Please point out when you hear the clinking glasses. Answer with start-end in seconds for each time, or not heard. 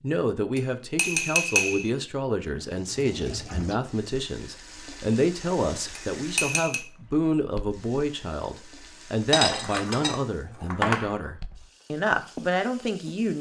0.6-1.9, 6.0-6.8, 9.3-11.1.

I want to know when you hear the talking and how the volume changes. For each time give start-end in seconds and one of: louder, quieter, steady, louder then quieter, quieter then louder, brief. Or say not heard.
0.0-13.3 steady.